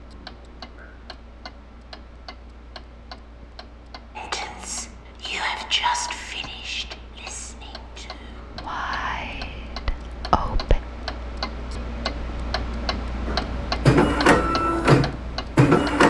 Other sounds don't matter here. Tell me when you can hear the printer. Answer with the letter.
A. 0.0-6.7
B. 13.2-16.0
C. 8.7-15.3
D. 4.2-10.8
B.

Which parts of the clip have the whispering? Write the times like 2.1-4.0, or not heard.
4.2-10.8.